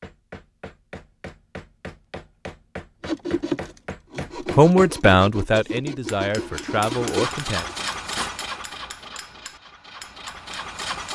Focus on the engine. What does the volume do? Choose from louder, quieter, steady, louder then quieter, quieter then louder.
quieter then louder.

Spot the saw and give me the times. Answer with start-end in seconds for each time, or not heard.
3.0-8.3.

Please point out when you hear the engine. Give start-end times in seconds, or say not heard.
6.7-11.1.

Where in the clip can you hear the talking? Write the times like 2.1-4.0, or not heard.
4.5-7.7.